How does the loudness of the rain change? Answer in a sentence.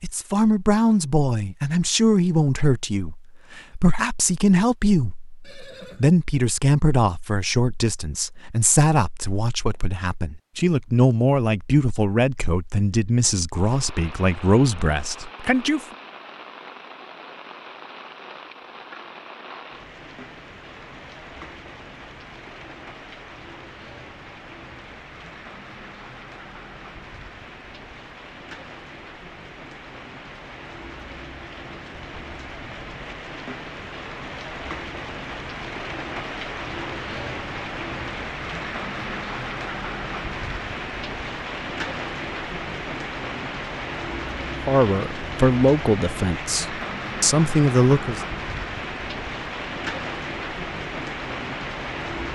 The volume of the rain goes up.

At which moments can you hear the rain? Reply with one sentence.
You can hear the rain from 13.5 to 52.3 s.